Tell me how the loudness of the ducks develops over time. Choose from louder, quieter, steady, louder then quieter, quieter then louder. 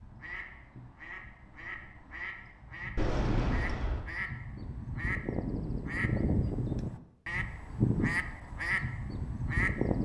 louder.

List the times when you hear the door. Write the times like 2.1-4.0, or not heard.
3.0-4.0.